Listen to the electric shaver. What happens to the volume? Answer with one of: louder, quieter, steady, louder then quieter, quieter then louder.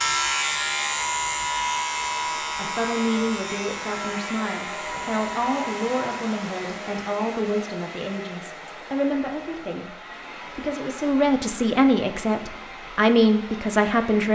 quieter.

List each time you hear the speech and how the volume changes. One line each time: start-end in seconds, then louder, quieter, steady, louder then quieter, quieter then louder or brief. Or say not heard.
2.5-14.2 louder.